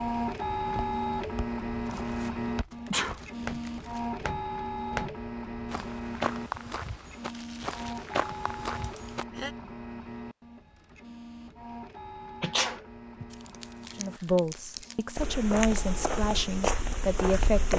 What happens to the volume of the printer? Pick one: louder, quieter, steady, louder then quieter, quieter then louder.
quieter.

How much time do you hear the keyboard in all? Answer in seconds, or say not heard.
not heard.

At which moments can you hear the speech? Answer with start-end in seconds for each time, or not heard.
13.9-17.7.